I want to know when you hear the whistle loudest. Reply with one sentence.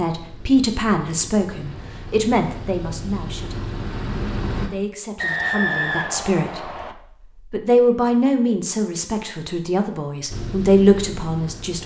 The volume of the whistle peaks at 6 seconds.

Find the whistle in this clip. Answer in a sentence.
You can hear the whistle from 5.2 to 7.0 s.